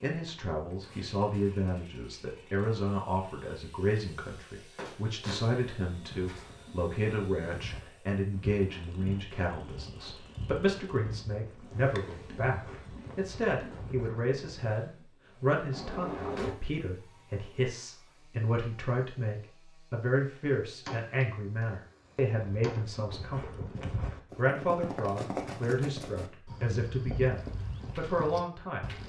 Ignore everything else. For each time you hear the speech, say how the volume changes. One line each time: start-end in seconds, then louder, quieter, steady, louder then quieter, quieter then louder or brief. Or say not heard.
0.0-28.9 steady.